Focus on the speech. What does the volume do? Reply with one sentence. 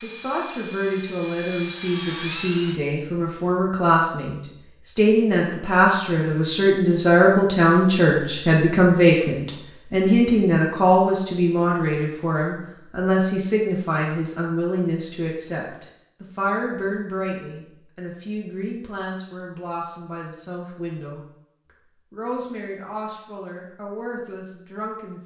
The volume of the speech goes up, then down.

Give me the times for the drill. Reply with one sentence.
The drill can be heard from 0.0 to 2.8 s.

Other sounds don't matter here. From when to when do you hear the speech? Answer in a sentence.
The speech can be heard from 0.0 to 21.2 s and from 22.1 to 25.2 s.